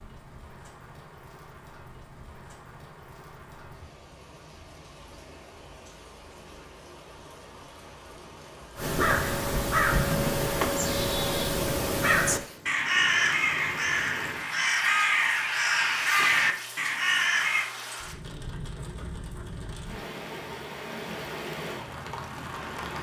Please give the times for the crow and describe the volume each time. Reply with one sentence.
You can hear the crow from 8.8 to 17.7 s, at a steady volume.